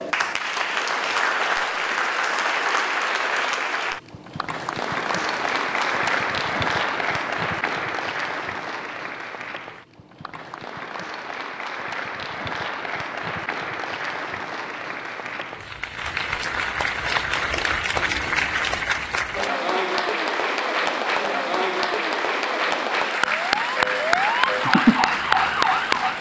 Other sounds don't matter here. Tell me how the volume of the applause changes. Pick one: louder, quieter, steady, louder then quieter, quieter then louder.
quieter then louder.